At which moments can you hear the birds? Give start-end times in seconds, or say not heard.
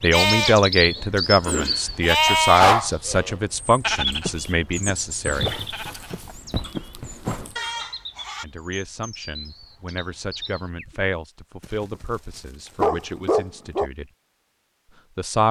0.0-11.1.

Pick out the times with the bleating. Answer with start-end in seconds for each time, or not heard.
0.1-8.4.